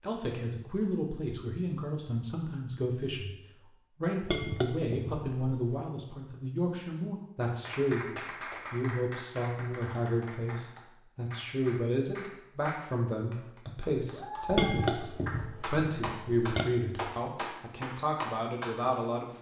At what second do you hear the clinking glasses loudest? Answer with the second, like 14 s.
15 s.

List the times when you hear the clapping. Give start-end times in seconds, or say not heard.
7.6-18.8.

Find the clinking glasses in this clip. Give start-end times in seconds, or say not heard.
4.2-5.8, 14.5-16.6.